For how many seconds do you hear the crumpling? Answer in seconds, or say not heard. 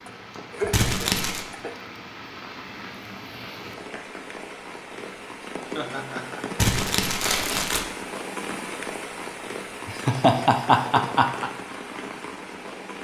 2 s.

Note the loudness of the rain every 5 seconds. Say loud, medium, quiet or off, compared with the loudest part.
medium, loud, loud.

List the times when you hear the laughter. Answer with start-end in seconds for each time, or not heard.
0.1-1.8, 5.8-6.5, 9.8-11.5.